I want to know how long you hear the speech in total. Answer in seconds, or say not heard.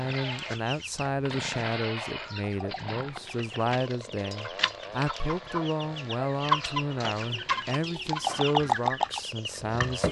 10 s.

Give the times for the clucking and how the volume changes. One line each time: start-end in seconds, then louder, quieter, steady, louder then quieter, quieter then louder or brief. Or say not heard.
0.0-10.0 louder.